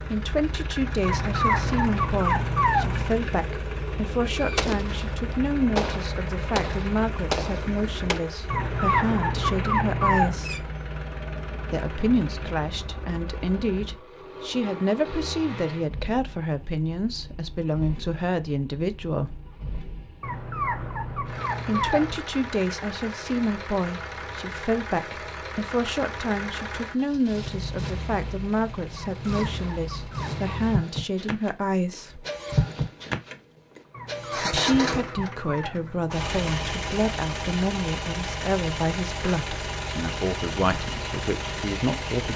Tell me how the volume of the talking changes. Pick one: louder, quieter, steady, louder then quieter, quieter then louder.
steady.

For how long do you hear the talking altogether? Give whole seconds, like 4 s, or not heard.
37 s.